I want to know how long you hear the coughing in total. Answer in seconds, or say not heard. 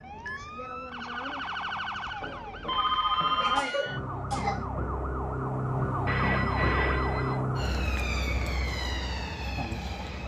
2 s.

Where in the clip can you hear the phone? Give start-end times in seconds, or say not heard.
2.2-3.6, 6.0-7.4.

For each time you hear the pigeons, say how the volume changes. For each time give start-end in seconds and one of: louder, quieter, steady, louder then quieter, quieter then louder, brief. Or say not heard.
not heard.